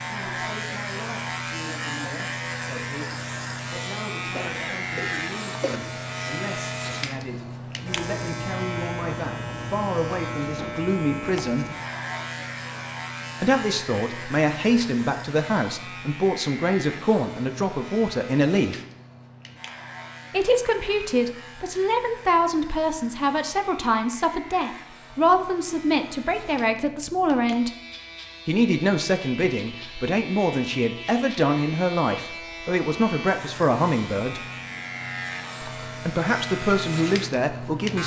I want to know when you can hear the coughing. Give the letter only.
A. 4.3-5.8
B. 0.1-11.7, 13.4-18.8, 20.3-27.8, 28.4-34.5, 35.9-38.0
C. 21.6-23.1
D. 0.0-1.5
A.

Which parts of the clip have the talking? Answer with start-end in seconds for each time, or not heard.
0.1-11.7, 13.4-18.8, 20.3-27.8, 28.4-34.5, 35.9-38.0.